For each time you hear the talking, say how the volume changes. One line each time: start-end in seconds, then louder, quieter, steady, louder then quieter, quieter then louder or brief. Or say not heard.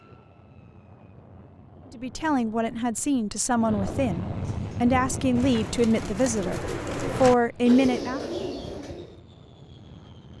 1.9-8.2 louder.